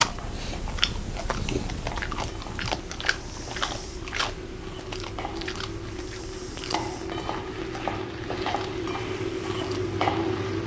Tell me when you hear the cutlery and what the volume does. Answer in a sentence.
The cutlery can't be heard in this clip.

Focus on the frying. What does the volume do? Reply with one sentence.
The loudness of the frying goes up.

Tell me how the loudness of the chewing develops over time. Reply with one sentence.
The volume of the chewing goes down.